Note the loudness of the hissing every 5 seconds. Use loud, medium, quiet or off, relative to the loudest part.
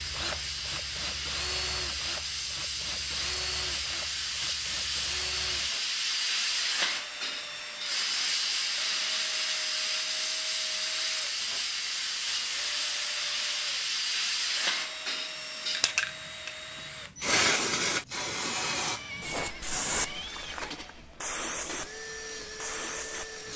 loud, loud, loud, loud, medium.